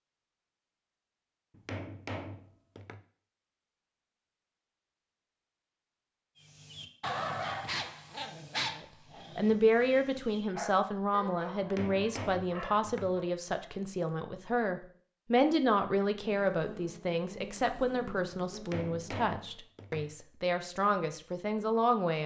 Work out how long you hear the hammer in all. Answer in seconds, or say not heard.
5 s.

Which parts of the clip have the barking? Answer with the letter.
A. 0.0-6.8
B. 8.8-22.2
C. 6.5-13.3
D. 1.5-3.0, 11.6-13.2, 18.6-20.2
C.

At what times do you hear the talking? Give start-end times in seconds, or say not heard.
8.8-22.2.